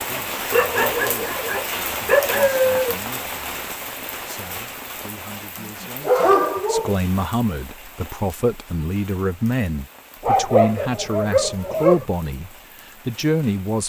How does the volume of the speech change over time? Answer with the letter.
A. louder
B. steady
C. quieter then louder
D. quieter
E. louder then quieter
A.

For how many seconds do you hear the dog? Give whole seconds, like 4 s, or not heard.
6 s.